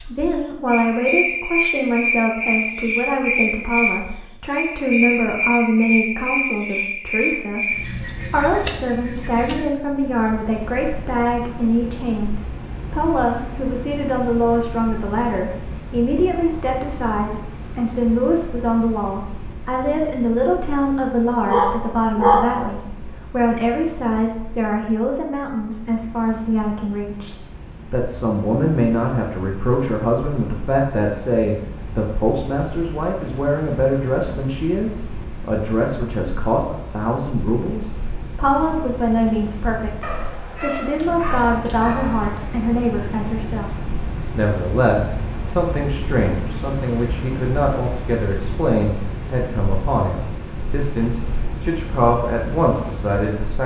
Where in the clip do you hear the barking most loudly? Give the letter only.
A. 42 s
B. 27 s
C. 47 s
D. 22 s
D.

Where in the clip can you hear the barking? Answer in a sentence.
You can hear the barking from 21.4 to 22.6 s and from 40.0 to 42.2 s.